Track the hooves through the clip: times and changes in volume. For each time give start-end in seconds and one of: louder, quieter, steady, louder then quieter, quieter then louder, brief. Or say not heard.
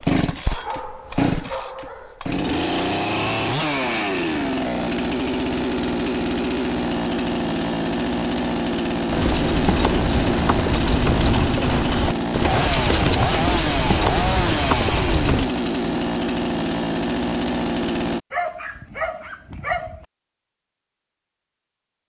9.1-15.5 steady.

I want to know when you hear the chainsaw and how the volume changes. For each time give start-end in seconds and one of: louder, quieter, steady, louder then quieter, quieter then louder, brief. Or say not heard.
0.0-18.2 steady.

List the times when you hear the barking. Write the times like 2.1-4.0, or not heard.
0.5-2.2, 18.3-20.1.